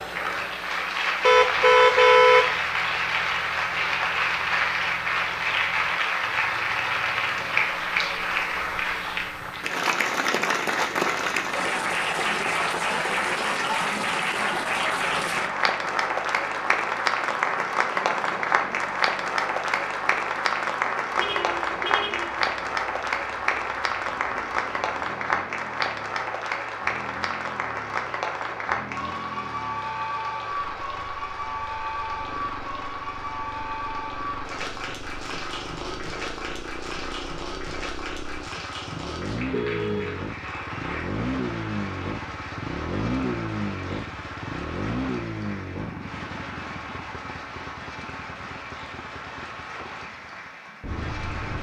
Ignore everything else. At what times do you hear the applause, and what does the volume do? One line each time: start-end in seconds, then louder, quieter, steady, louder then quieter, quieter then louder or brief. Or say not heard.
0.0-51.5 quieter.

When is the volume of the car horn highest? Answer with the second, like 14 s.
2 s.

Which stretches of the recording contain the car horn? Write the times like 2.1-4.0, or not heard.
1.2-2.5, 21.1-22.5, 39.5-40.2.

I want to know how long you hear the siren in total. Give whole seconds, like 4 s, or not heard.
not heard.